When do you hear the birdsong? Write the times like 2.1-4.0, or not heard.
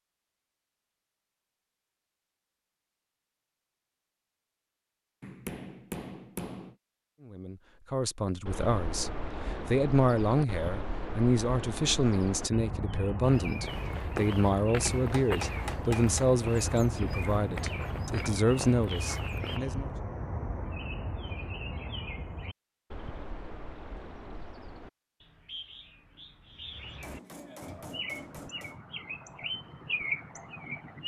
8.4-31.0.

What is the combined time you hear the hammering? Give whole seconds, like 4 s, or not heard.
5 s.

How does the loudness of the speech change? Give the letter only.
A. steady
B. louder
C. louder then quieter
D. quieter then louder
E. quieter
A.